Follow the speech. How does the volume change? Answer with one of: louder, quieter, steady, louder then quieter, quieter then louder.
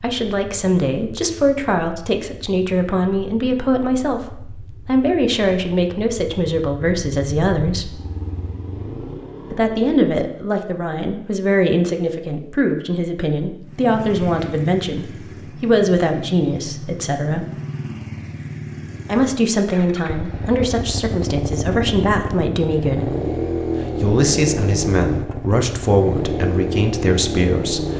steady.